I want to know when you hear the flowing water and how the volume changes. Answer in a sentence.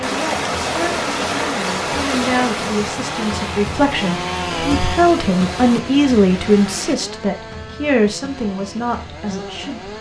You can hear the flowing water from 0.0 to 7.0 s, getting quieter.